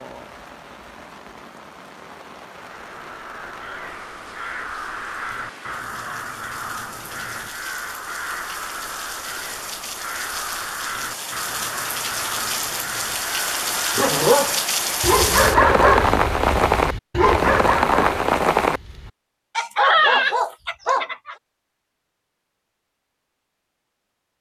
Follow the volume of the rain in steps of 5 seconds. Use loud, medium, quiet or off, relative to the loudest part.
quiet, quiet, medium, loud, off.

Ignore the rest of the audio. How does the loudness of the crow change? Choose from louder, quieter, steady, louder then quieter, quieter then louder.
steady.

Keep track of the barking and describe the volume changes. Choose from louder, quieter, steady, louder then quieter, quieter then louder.
quieter then louder.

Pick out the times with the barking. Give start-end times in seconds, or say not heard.
13.9-21.4.